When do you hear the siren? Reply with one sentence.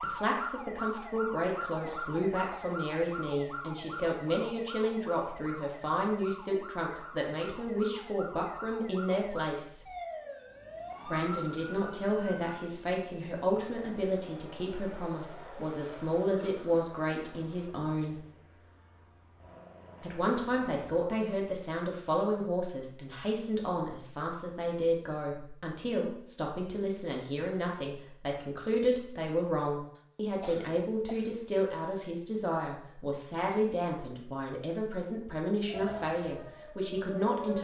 The siren can be heard from 0.0 to 12.6 s and from 35.6 to 37.5 s.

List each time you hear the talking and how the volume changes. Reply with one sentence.
The talking can be heard from 0.0 to 9.9 s, at a steady volume; from 11.1 to 18.2 s, at a steady volume; and from 20.0 to 37.5 s, at a steady volume.